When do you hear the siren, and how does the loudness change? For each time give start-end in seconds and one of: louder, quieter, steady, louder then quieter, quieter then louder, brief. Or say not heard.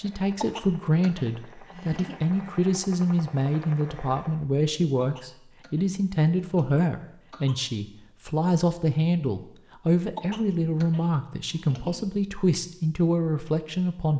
not heard.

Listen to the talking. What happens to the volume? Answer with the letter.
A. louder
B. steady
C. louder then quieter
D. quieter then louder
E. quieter
B.